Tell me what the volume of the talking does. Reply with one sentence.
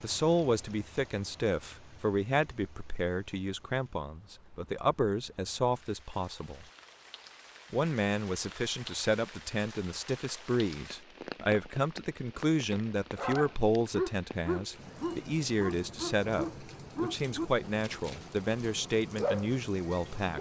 The volume of the talking stays about the same.